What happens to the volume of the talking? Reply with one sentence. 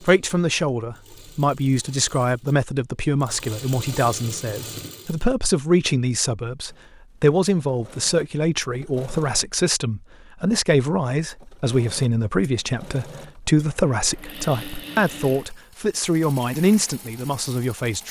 The volume of the talking stays about the same.